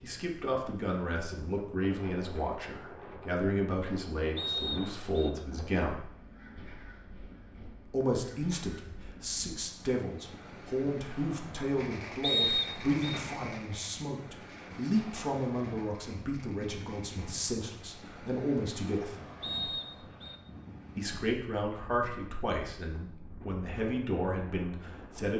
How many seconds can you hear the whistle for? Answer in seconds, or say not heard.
3 s.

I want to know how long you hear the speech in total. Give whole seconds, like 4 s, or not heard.
22 s.